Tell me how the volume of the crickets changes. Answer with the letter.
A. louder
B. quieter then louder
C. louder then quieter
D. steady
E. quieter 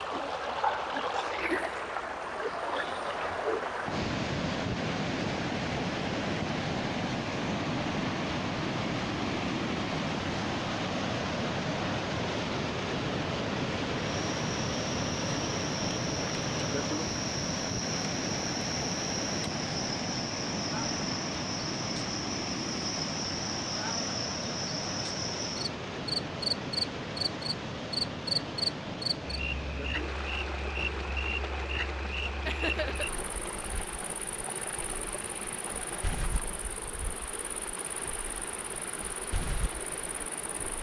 C.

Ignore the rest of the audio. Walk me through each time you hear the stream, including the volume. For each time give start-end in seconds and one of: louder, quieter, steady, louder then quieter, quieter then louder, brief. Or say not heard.
0.0-40.7 quieter.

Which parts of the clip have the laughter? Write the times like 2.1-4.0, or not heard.
32.5-33.0.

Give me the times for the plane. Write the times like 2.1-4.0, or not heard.
not heard.